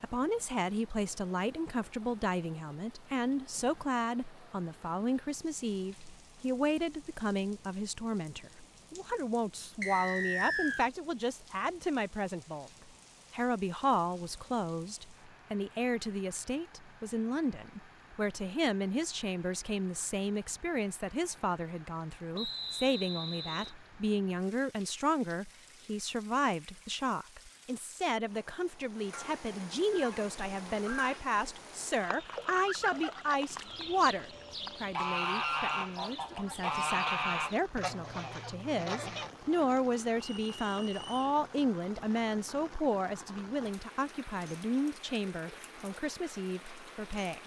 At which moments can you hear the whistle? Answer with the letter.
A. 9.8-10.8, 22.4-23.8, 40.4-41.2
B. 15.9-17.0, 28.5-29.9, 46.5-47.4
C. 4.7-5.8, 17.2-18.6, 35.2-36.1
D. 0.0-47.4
A.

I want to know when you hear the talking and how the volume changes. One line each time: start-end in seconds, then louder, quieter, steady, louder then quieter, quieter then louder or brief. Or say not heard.
0.0-47.4 steady.